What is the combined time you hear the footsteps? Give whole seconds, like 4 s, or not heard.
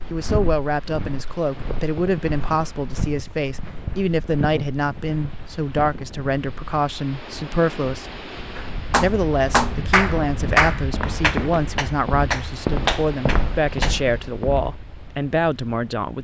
11 s.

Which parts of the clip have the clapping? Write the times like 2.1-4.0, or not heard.
8.6-13.9.